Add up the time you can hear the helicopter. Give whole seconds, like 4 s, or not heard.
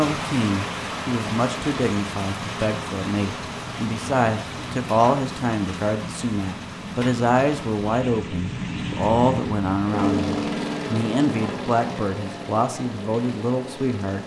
14 s.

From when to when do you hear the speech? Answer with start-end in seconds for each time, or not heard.
0.0-14.2.